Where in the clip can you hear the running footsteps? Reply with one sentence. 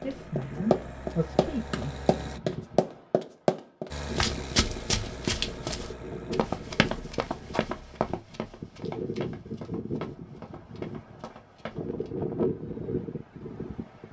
The running footsteps can be heard from 0.0 to 12.1 s.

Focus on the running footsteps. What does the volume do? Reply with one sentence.
The volume of the running footsteps goes down.